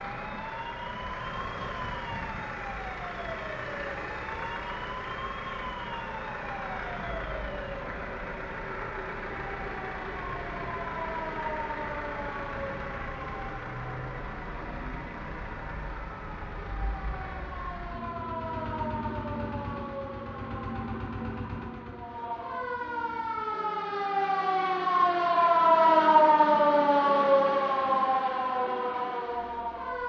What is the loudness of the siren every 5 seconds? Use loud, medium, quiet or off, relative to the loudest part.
quiet, quiet, quiet, quiet, medium, loud.